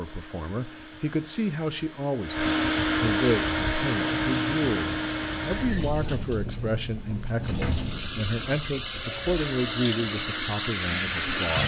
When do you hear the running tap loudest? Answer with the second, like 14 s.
11 s.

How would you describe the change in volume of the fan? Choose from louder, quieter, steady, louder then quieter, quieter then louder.
louder then quieter.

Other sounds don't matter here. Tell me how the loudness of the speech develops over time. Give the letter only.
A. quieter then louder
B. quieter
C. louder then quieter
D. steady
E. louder
D.